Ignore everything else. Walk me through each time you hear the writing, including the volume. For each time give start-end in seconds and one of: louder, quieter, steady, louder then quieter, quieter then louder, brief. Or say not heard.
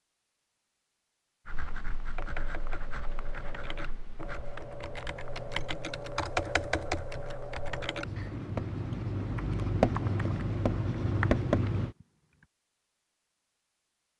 1.4-11.9 quieter then louder.